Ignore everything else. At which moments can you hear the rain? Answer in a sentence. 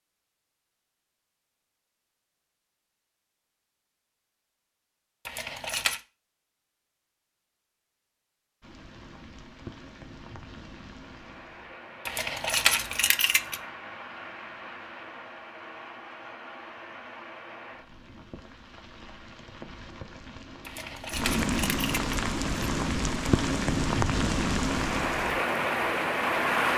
The rain can be heard from 8.6 to 26.7 s.